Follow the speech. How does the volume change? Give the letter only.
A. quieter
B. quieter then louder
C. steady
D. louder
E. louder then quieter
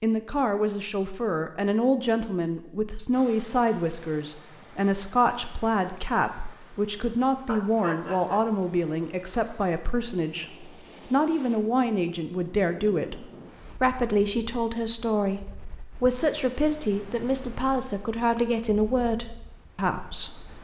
C.